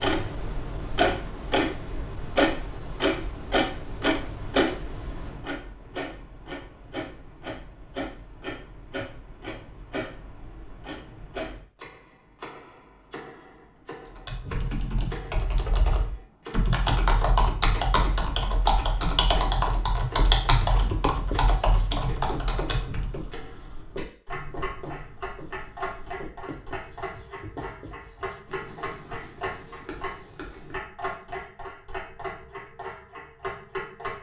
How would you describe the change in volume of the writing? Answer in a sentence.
The volume of the writing goes down.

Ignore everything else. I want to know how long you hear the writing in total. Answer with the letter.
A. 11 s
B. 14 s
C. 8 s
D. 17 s
A.